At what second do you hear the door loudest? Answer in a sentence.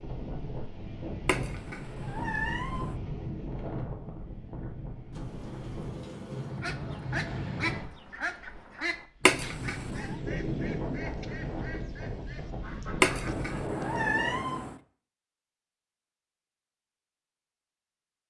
The loudest moment of the door is at 6 seconds.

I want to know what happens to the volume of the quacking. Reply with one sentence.
The loudness of the quacking goes down.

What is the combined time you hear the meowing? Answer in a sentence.
You can hear the meowing for 4 seconds altogether.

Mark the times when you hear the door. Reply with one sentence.
The door can be heard from 5.1 to 6.7 s.